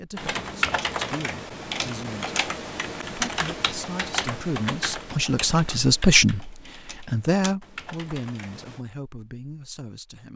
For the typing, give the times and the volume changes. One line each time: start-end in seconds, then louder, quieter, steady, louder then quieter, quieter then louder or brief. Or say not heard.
0.1-8.8 quieter.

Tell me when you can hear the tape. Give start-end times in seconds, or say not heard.
not heard.